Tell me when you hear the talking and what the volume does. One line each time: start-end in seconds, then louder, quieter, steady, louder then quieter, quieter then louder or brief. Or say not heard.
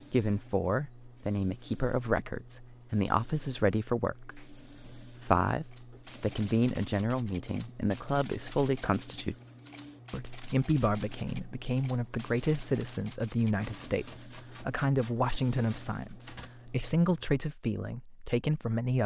0.1-9.3 steady
10.1-19.0 steady.